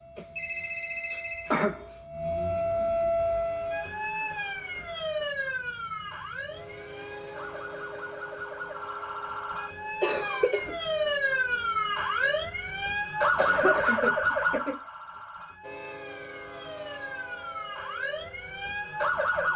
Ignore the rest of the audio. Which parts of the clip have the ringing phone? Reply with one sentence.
The ringing phone can be heard from 0.1 to 2.0 s.